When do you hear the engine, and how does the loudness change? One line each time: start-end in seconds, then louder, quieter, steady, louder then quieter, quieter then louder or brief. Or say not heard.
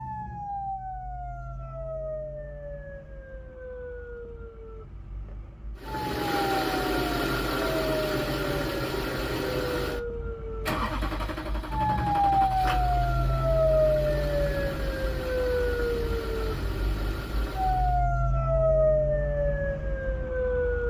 5.8-18.1 quieter.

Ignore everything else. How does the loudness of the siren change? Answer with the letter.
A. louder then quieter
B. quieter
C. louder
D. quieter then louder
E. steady
C.